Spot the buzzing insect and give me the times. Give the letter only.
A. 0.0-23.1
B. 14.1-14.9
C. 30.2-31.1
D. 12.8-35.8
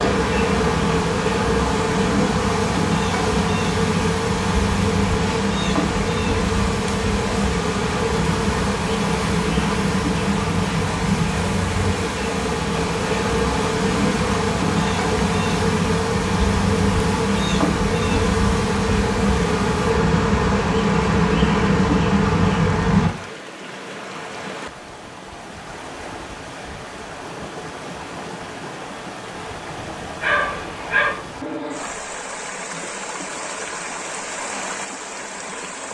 A.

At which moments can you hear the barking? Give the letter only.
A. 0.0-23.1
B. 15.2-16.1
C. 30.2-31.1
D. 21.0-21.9
C.